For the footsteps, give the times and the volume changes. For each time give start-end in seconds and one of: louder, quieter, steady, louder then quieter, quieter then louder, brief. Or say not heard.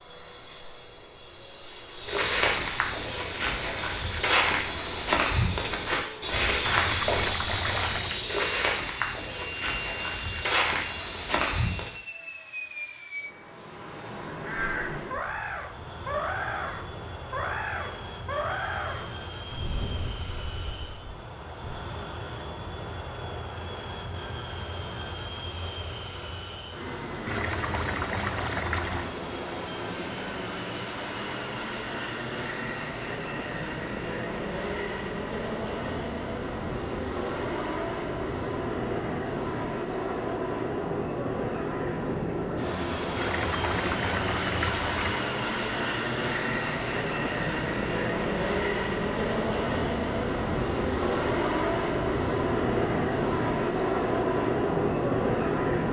1.9-12.0 steady.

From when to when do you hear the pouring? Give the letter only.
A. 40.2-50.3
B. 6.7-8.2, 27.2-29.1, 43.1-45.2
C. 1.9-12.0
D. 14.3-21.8
B.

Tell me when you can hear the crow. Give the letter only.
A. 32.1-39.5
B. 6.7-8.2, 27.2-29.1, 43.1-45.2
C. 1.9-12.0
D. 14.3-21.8
D.